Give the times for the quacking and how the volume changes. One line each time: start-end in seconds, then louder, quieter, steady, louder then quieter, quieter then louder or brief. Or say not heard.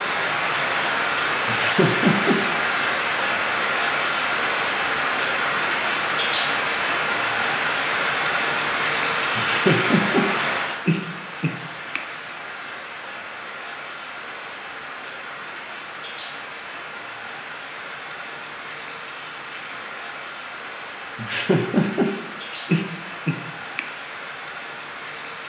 not heard.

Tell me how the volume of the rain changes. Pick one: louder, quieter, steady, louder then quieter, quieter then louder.
quieter.